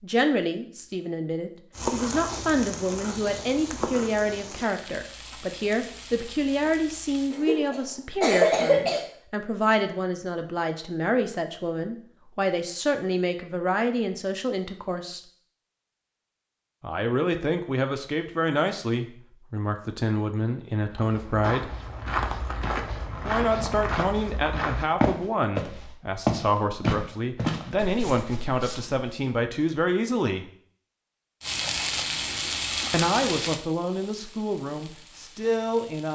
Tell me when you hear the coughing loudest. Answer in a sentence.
The loudest moment of the coughing is at 9 seconds.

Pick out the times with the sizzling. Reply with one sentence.
The sizzling can be heard from 1.7 to 7.3 s and from 31.4 to 36.1 s.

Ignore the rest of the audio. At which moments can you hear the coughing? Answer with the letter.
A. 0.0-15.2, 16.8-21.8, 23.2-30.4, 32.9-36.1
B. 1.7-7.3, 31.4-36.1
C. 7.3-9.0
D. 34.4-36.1
C.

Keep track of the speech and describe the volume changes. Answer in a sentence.
The volume of the speech stays about the same.